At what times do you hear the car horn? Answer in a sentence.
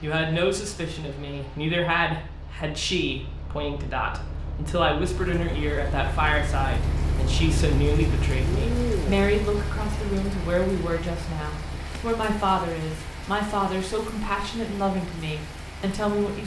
You can't hear the car horn here.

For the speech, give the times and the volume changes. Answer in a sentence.
The speech can be heard from 0.0 to 16.4 s, at a steady volume.